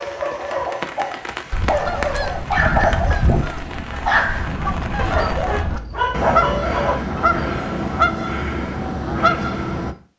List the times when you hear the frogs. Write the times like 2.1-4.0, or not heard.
not heard.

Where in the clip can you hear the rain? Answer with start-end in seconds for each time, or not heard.
0.0-5.7.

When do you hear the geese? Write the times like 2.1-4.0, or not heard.
1.5-9.9.